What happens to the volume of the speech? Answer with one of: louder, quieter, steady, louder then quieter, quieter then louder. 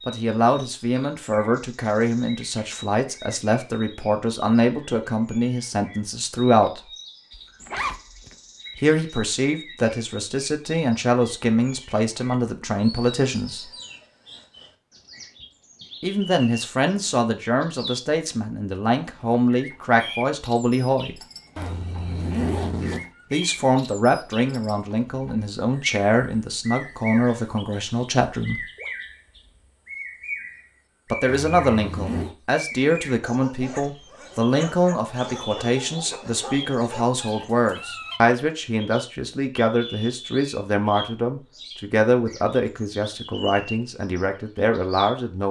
steady.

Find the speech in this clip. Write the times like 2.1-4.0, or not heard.
0.1-6.8, 8.8-13.7, 16.0-21.2, 23.3-28.6, 31.1-45.4.